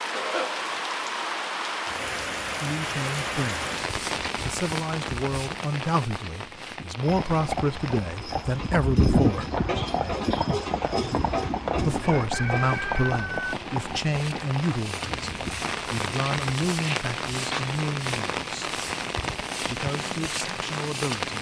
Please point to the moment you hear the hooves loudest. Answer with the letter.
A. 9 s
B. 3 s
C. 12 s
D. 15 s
A.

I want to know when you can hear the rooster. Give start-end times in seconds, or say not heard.
12.0-13.6.